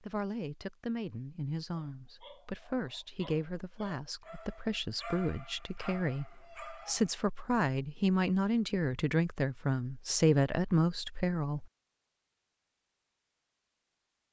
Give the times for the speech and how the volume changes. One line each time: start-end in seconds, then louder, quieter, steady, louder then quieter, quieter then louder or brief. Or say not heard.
0.0-11.7 louder.